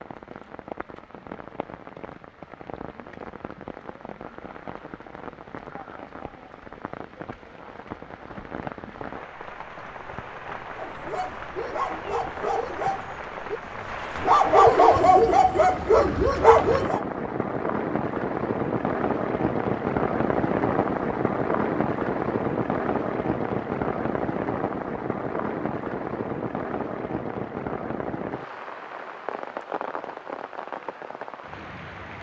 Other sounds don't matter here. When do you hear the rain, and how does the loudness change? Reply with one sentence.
The rain can be heard from 0.0 to 32.1 s, getting louder then quieter.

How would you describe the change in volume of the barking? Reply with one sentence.
The volume of the barking goes up.